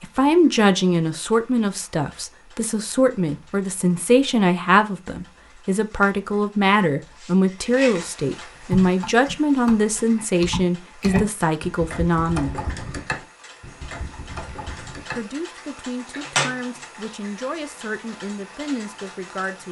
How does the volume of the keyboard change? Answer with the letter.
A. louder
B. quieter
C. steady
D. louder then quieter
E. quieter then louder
D.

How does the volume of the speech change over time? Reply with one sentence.
The volume of the speech goes down.